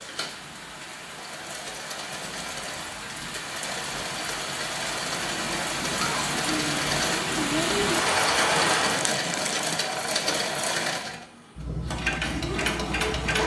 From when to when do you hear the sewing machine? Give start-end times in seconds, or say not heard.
0.0-13.4.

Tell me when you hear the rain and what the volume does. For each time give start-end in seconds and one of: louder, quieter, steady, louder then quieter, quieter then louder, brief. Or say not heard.
0.0-9.1 louder.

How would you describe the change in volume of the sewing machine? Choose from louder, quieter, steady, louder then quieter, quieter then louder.
louder.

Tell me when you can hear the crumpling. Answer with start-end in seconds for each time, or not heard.
8.6-9.8.